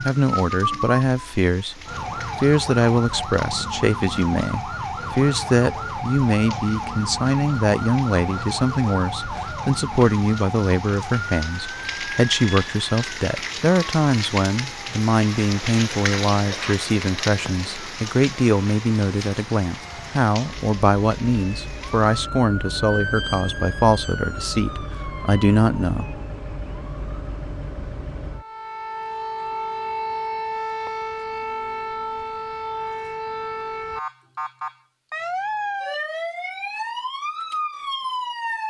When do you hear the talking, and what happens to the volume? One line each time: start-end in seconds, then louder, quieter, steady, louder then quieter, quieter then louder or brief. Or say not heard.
0.0-1.8 brief
2.4-26.1 steady.